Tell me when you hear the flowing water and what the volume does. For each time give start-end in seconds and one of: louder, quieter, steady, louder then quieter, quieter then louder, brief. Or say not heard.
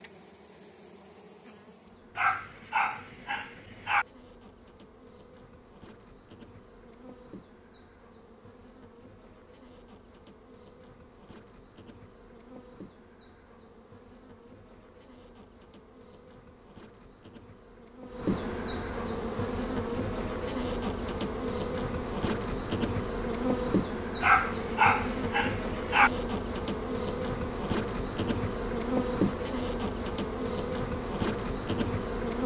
not heard.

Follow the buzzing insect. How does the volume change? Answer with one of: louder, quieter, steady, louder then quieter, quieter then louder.
louder.